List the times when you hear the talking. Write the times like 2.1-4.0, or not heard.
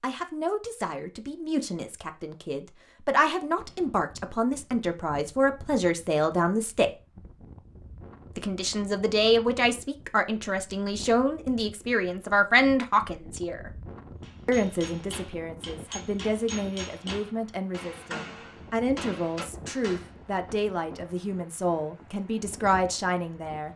0.0-6.9, 8.3-13.8, 14.4-23.7.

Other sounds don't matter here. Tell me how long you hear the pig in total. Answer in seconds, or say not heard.
not heard.